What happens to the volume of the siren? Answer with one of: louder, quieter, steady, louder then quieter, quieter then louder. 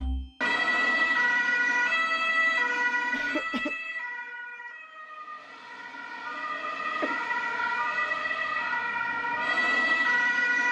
quieter then louder.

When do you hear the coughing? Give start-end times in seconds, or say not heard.
3.1-3.8, 7.0-7.8.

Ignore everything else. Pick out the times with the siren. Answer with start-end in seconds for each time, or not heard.
0.0-10.6.